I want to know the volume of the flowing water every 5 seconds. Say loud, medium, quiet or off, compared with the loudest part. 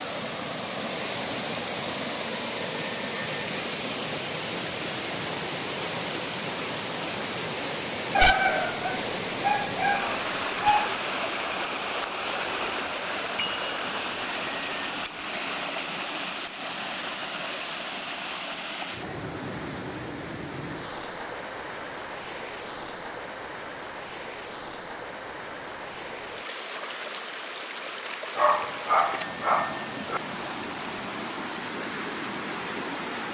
loud, loud, loud, loud, medium, medium, loud.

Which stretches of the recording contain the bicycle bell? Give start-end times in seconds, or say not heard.
2.5-3.6, 13.3-14.9, 28.9-30.1.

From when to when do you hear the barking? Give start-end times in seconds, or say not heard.
8.2-10.9, 28.4-30.2.